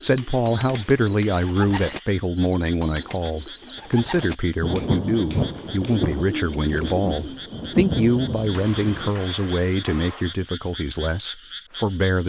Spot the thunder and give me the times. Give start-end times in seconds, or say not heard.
4.6-9.2.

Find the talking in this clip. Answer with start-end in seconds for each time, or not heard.
0.0-12.2.